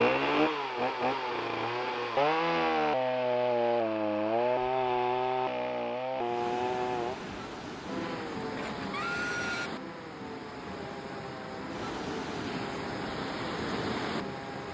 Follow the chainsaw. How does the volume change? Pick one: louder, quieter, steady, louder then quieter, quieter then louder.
quieter.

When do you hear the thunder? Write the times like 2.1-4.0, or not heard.
not heard.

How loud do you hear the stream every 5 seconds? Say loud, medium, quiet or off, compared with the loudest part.
off, loud, loud.